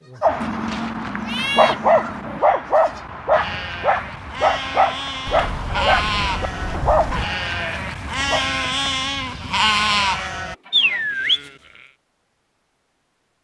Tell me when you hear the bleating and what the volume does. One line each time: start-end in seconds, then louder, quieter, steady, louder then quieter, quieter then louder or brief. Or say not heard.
0.0-11.5 louder.